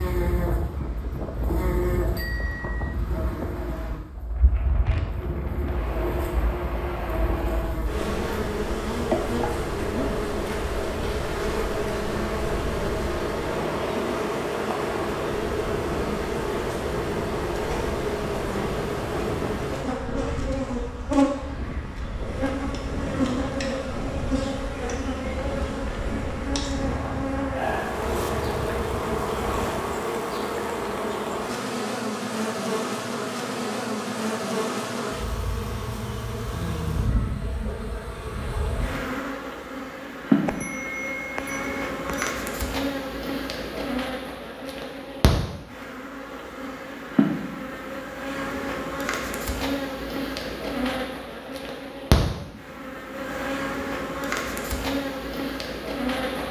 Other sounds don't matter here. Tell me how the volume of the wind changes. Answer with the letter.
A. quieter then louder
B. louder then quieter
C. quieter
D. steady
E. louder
D.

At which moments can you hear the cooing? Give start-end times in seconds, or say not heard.
not heard.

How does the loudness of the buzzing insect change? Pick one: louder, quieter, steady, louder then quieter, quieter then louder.
steady.